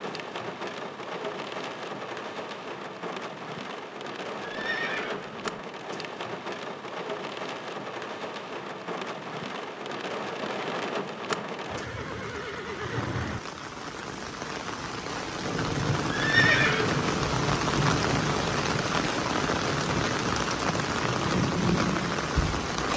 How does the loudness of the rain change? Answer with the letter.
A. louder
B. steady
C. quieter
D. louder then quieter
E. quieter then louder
A.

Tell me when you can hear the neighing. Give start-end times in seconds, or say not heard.
4.4-5.5, 11.7-13.4, 16.1-17.1.